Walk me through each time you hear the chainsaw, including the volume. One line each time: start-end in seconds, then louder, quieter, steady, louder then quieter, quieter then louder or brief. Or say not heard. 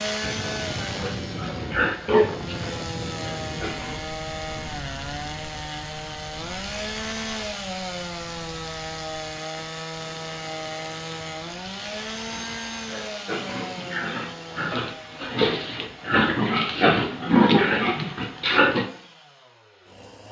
0.0-20.2 quieter.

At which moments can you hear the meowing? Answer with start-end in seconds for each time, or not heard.
not heard.